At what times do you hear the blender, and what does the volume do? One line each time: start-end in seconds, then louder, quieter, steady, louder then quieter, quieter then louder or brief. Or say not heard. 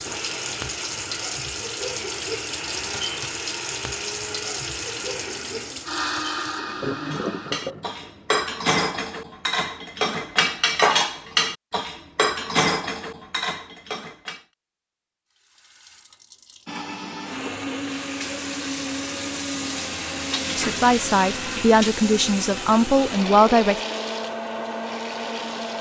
0.0-7.5 louder
16.6-25.7 steady.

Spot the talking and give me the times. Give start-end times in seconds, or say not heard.
20.6-23.8.